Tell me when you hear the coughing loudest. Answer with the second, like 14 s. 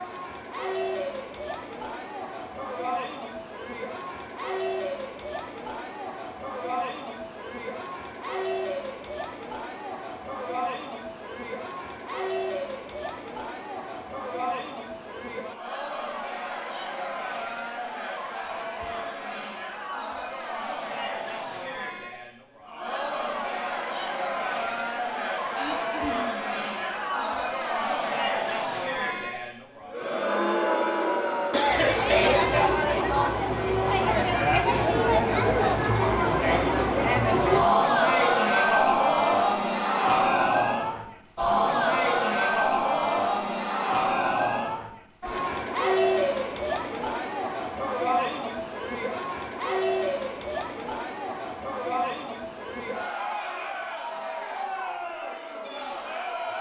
32 s.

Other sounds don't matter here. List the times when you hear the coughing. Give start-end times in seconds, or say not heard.
25.5-26.4, 31.5-32.5.